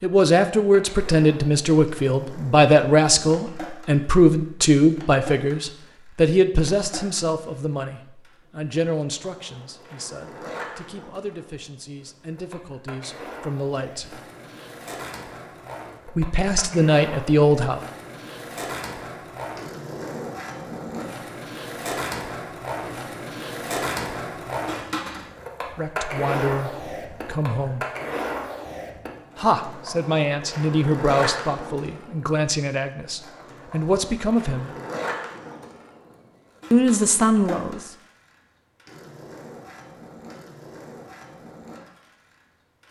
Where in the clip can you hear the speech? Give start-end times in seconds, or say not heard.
0.0-14.2, 16.1-17.8, 25.7-27.9, 29.4-34.8, 36.7-37.8.